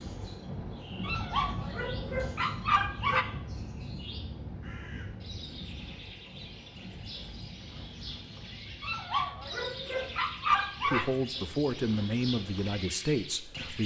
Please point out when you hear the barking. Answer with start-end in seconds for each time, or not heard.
1.0-3.2, 8.8-11.1.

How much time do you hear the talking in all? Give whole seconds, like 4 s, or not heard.
3 s.